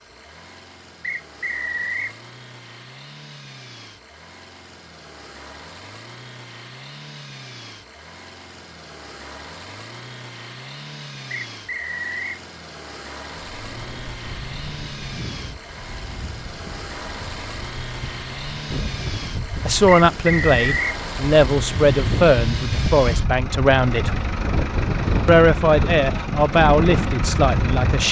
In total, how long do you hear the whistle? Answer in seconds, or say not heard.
3 s.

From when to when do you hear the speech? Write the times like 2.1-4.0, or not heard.
19.6-24.1, 25.2-28.0.